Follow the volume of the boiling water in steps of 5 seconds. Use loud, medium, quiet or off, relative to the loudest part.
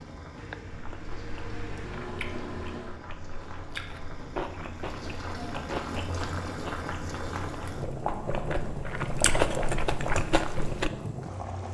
medium, loud, loud.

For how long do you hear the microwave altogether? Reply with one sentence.
The microwave can be heard for 3 seconds in total.